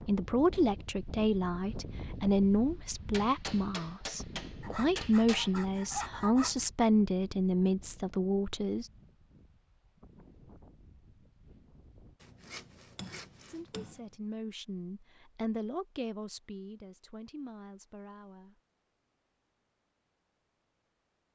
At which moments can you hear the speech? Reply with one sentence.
You can hear the speech from 0.0 to 8.9 s and from 13.4 to 18.6 s.